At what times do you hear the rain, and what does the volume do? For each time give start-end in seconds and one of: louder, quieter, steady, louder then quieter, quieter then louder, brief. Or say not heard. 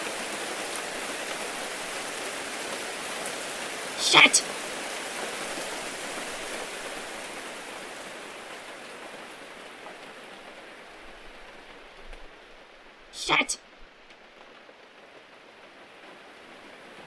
0.0-17.0 quieter.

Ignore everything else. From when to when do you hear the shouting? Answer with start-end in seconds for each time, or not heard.
4.0-4.4, 13.1-13.6.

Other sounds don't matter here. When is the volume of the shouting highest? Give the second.
4 s.